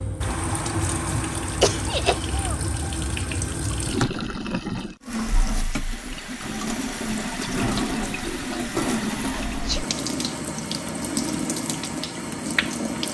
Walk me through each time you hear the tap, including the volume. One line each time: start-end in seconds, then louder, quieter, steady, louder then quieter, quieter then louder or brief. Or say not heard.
0.0-13.1 steady.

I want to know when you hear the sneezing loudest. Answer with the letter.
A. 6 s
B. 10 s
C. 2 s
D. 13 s
C.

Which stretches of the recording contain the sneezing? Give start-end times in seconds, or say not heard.
1.6-2.4, 9.2-9.9.